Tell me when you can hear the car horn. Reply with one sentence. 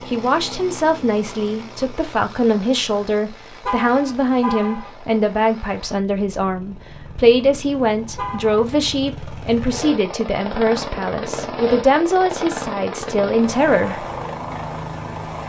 The car horn can be heard from 3.6 to 5.0 s and from 8.2 to 8.6 s.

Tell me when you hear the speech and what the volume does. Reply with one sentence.
You can hear the speech from 0.1 to 14.1 s, at a steady volume.